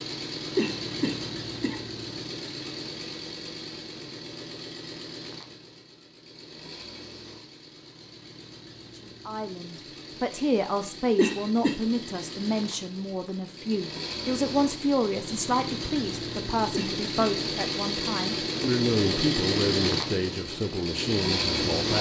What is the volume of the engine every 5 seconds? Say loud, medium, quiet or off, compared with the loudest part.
medium, quiet, medium, loud, loud.